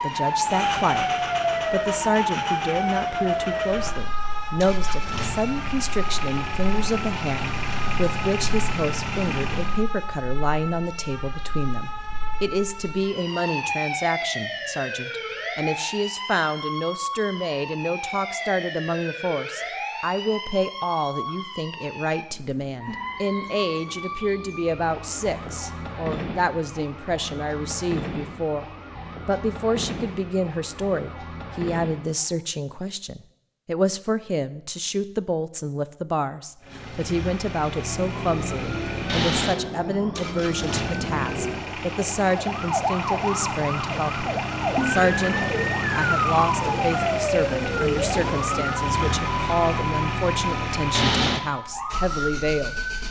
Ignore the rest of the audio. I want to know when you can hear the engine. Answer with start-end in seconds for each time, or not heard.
0.0-9.8, 36.6-53.0.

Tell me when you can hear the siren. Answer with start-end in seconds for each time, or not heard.
0.0-32.4, 37.7-53.0.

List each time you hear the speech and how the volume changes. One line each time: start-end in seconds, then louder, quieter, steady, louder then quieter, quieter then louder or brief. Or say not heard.
0.0-1.1 brief
1.7-52.8 steady.